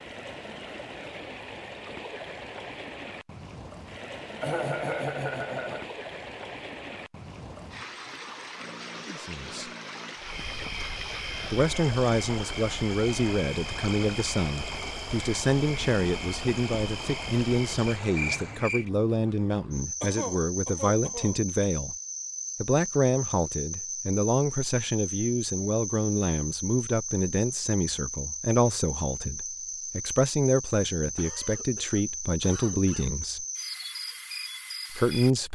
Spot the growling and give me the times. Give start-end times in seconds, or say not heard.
8.6-10.2.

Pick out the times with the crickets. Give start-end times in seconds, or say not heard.
10.2-35.4.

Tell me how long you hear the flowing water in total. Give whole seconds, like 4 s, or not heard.
19 s.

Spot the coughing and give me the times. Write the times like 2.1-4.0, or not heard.
4.4-6.0, 20.0-21.4, 31.1-33.2.